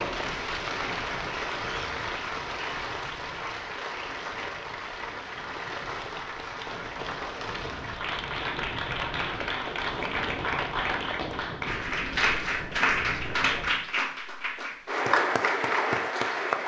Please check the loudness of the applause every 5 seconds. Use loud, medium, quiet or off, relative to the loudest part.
medium, medium, loud, loud.